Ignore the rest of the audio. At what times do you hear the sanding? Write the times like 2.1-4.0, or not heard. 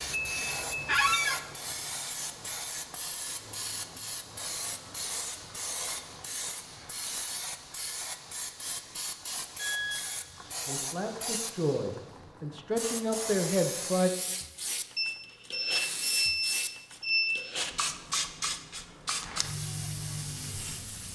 not heard.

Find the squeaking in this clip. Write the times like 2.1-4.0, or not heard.
0.8-1.4.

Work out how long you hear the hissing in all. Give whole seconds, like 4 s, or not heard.
21 s.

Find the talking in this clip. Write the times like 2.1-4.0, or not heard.
10.7-14.1.